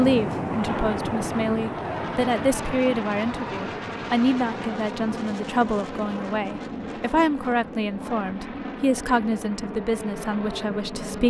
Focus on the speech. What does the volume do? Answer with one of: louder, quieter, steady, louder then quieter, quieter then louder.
steady.